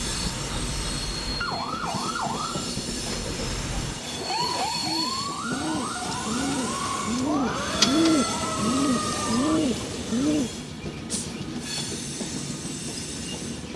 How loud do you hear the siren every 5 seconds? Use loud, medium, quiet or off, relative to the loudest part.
loud, loud, off.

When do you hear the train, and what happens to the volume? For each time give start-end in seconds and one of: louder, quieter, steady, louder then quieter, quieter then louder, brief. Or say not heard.
0.0-13.7 steady.